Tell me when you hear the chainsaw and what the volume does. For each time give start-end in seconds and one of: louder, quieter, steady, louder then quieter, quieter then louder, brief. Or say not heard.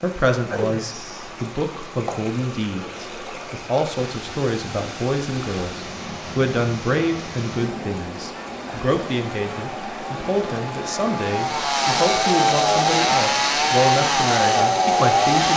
9.2-15.5 louder.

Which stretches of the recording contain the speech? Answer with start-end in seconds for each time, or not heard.
0.0-15.5.